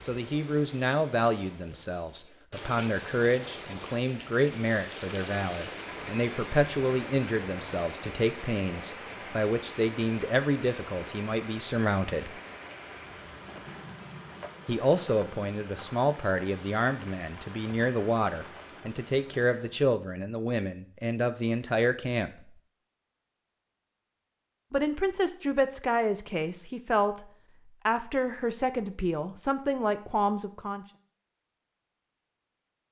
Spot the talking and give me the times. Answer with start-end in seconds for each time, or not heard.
0.0-12.4, 14.7-22.5, 24.7-27.2, 27.9-30.9.